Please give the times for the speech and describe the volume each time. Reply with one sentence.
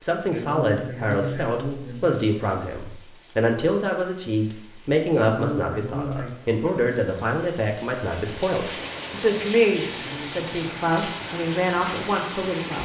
The speech can be heard from 0.0 to 12.8 s, at a steady volume.